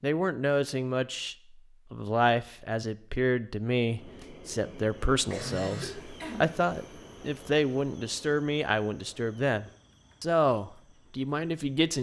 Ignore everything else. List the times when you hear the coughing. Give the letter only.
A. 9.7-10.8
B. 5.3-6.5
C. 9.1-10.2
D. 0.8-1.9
B.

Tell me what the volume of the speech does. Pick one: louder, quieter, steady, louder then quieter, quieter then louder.
steady.